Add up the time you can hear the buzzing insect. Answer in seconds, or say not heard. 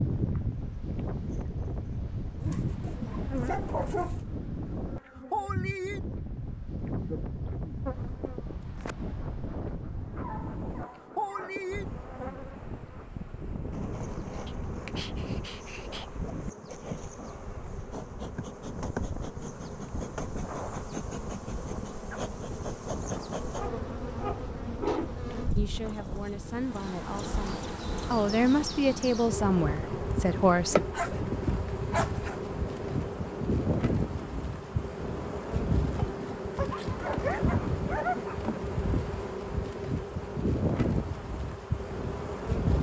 43 s.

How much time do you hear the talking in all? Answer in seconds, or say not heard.
5 s.